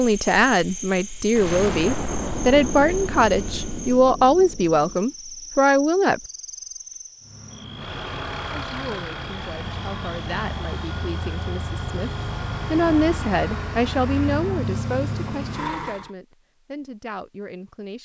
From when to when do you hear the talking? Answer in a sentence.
You can hear the talking from 0.0 to 6.2 s, from 8.5 to 12.1 s and from 12.7 to 18.0 s.